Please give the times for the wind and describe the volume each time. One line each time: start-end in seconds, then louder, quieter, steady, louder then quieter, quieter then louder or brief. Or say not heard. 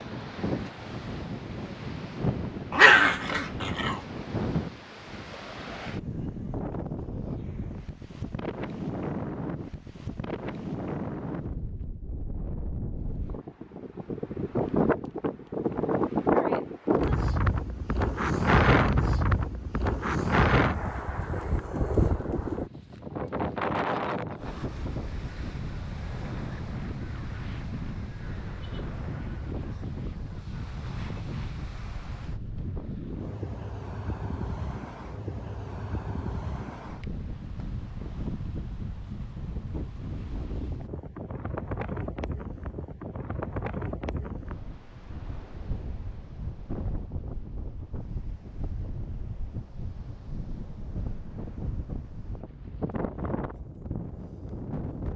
0.0-55.1 louder then quieter.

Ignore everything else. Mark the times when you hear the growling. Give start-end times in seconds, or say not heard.
2.7-4.0.